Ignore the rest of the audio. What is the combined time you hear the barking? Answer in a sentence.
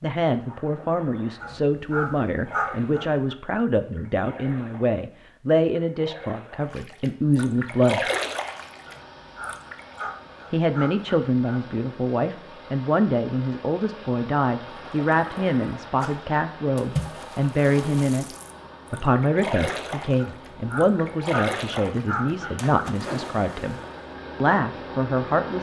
You can hear the barking for 7 seconds altogether.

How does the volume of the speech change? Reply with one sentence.
The loudness of the speech stays about the same.